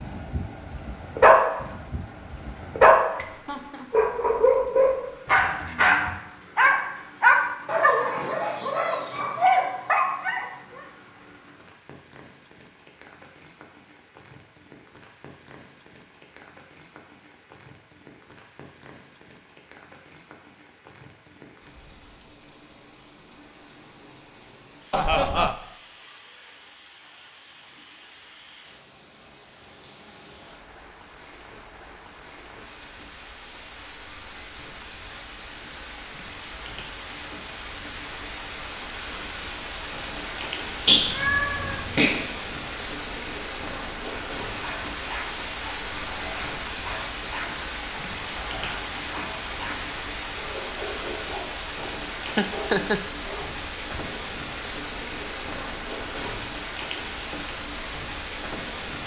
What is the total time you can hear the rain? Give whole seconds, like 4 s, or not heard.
59 s.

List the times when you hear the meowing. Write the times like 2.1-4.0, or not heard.
40.9-42.1.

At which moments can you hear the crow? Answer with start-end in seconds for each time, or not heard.
not heard.